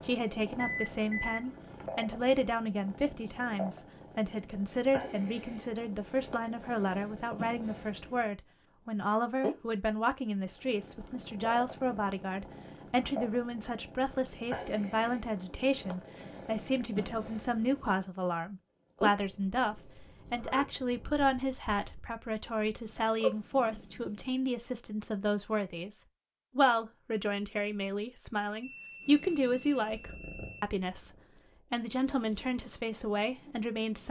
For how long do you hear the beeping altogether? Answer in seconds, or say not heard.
3 s.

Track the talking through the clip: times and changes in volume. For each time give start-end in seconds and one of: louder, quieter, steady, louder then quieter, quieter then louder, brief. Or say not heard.
0.0-34.0 steady.